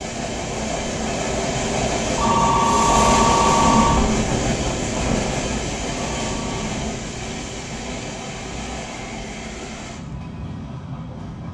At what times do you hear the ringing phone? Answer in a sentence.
The ringing phone can be heard from 2.1 to 4.0 s and from 6.0 to 6.6 s.